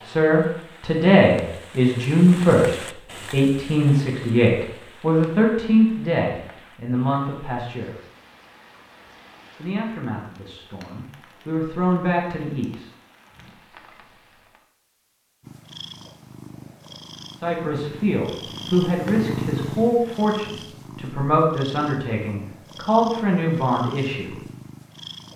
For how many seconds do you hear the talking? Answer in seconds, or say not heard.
18 s.